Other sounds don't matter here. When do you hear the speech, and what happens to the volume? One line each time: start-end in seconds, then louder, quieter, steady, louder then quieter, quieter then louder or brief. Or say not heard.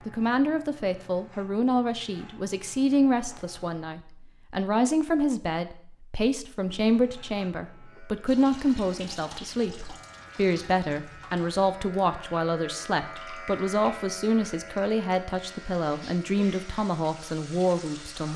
0.1-18.3 steady.